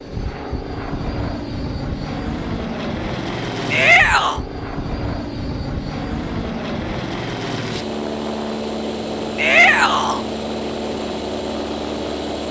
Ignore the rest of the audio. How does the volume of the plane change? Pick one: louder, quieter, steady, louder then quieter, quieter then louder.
steady.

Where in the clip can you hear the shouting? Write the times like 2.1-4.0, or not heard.
3.7-4.4, 9.3-10.2.